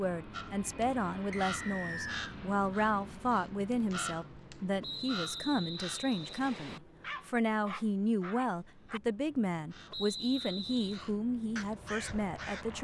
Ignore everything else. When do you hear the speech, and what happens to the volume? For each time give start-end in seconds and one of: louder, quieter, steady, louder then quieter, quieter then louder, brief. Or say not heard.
0.0-12.7 steady.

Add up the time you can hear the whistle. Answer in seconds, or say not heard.
4 s.